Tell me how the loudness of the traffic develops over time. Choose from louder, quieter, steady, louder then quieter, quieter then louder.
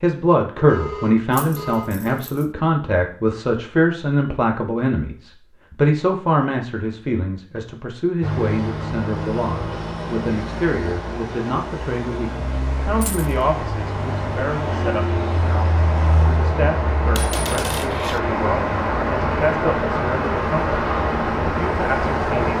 louder.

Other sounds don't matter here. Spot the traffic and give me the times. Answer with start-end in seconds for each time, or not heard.
8.2-22.5.